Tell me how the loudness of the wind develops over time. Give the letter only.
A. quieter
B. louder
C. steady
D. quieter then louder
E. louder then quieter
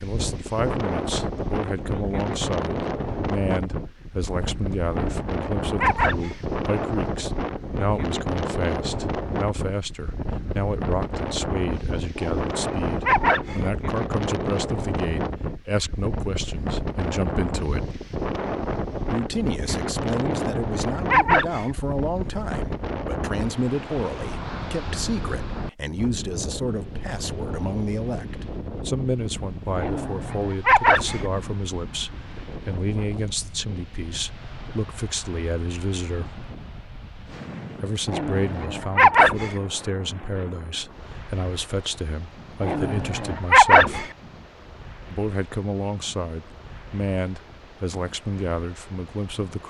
A.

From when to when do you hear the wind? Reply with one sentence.
You can hear the wind from 0.0 to 49.6 s.